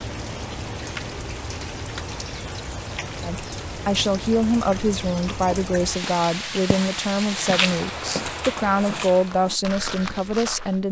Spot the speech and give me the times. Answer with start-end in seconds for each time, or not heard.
3.2-10.8.